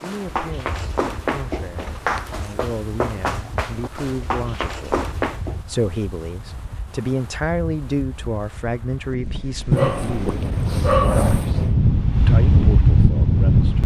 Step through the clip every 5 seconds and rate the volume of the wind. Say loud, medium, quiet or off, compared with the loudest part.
quiet, quiet, loud.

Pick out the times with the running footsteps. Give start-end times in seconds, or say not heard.
0.0-5.6.